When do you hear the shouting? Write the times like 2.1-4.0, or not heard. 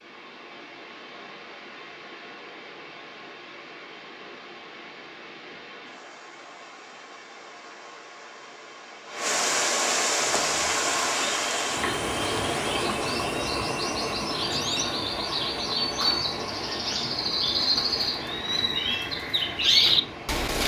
not heard.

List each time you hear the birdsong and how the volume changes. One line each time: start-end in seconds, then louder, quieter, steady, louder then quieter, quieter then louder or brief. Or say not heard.
10.3-20.6 louder.